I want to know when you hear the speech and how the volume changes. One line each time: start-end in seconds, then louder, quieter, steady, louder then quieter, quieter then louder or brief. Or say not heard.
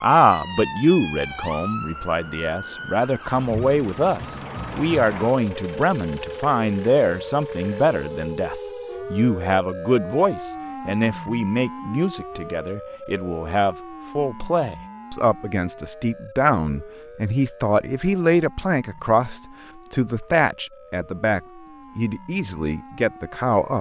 0.0-23.7 steady.